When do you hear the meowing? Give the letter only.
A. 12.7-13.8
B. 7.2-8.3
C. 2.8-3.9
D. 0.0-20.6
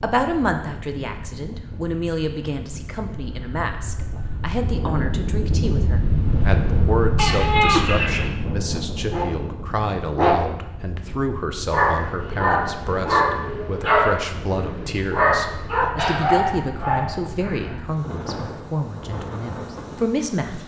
B.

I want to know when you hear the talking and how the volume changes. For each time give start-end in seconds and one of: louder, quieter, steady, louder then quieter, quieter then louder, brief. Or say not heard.
0.0-20.6 steady.